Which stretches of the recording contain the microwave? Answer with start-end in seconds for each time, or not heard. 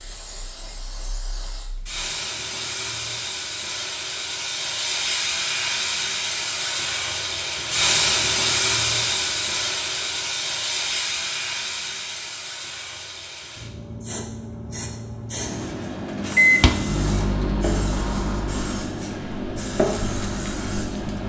15.4-21.2.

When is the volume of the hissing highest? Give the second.
8 s.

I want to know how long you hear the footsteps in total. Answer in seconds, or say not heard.
not heard.